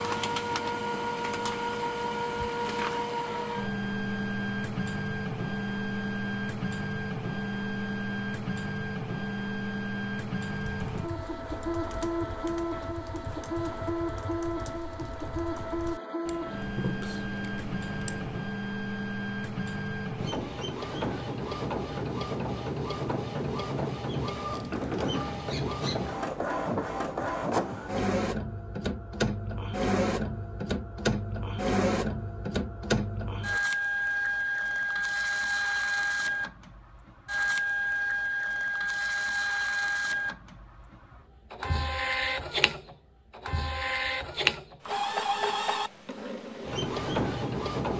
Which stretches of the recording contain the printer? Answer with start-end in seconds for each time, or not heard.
0.0-47.9.